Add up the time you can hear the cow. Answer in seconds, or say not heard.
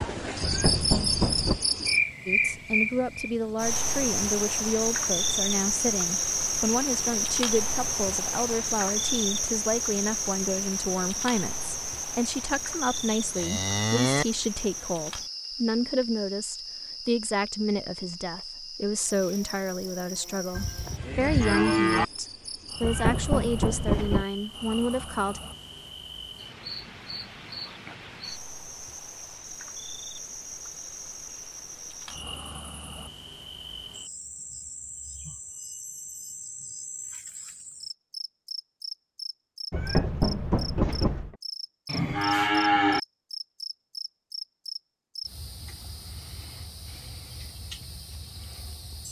4 s.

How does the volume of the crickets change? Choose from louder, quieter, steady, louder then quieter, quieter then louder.
quieter.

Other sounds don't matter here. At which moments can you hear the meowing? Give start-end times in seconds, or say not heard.
0.4-1.6, 22.8-24.2, 39.7-41.4.